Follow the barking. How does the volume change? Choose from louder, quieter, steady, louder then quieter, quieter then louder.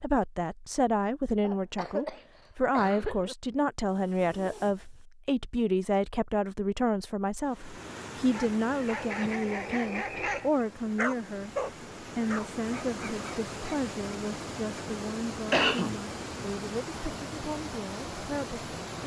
louder then quieter.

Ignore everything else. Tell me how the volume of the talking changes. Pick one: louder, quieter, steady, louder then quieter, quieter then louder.
quieter.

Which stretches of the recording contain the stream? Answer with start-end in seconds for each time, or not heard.
7.4-19.0.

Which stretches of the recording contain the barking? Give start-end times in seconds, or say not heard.
8.3-13.8.